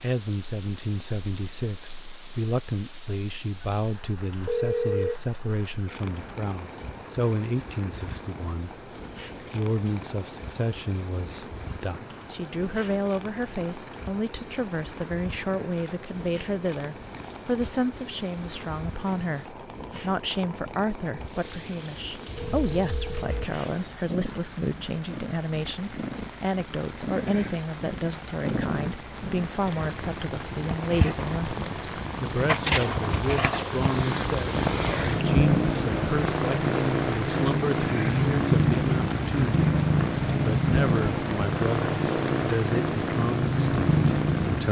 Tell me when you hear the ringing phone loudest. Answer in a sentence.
The volume of the ringing phone peaks at 5 seconds.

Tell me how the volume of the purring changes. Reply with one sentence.
The volume of the purring goes up.